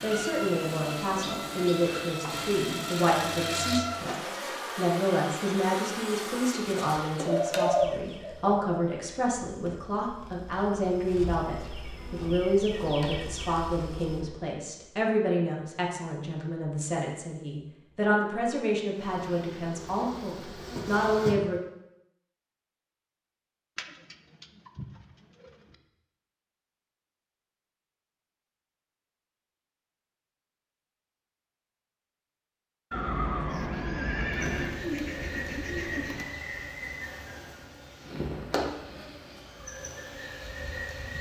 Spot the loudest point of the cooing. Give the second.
8 s.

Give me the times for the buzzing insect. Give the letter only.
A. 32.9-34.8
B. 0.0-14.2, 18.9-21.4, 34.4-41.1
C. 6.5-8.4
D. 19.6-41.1
B.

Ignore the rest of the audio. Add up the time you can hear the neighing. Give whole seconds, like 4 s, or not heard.
2 s.